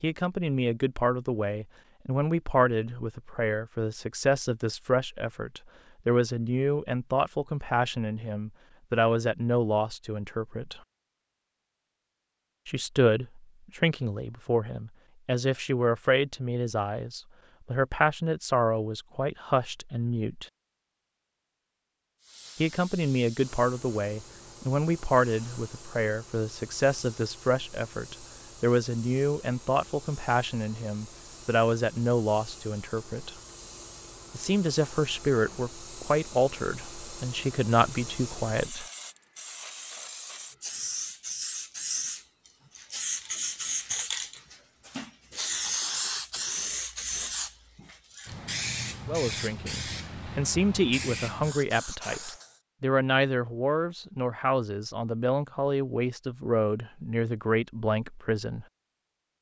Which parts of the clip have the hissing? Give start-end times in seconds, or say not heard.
22.2-52.6.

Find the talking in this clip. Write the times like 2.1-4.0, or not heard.
0.0-10.8, 12.7-20.4, 22.6-33.4, 34.3-38.9, 49.0-58.6.